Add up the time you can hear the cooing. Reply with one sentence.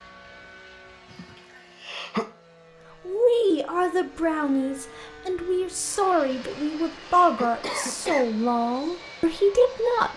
The cooing can't be heard in this clip.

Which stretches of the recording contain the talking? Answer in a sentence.
The talking can be heard from 3.0 to 10.1 s.